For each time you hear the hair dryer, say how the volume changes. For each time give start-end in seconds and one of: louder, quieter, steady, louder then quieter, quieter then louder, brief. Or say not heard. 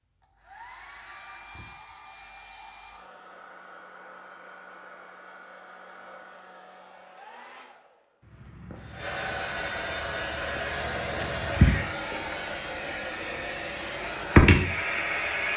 0.1-15.5 louder.